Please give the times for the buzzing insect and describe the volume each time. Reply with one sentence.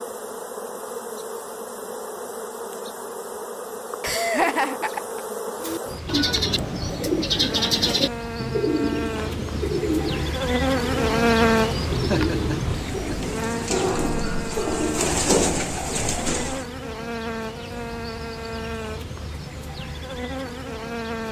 The buzzing insect can be heard from 0.0 to 21.2 s, getting louder then quieter.